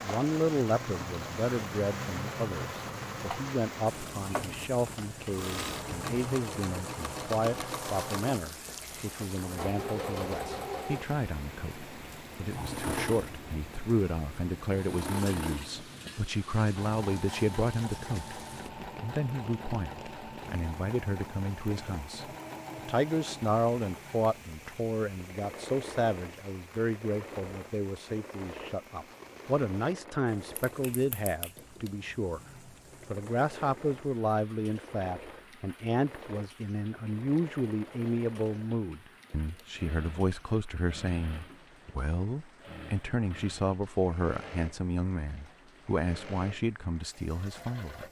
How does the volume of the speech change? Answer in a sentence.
The volume of the speech stays about the same.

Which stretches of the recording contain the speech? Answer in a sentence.
You can hear the speech from 0.0 to 32.4 s and from 33.1 to 48.0 s.